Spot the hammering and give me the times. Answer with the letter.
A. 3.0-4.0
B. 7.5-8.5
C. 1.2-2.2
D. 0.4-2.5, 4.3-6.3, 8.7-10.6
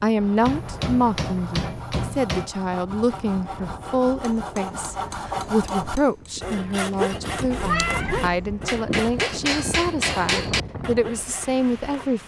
D.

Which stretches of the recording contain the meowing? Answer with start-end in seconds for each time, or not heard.
7.5-8.5.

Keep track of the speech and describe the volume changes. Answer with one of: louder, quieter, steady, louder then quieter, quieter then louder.
steady.